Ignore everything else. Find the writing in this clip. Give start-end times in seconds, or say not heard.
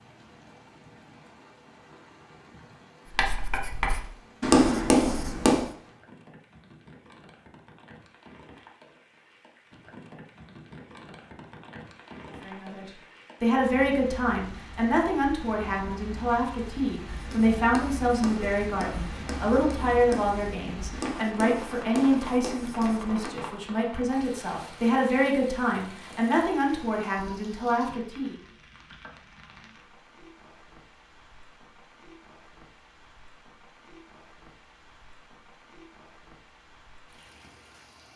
3.1-5.7, 17.1-23.4.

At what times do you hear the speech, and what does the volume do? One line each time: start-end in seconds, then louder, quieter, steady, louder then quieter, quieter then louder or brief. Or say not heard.
12.4-28.4 steady.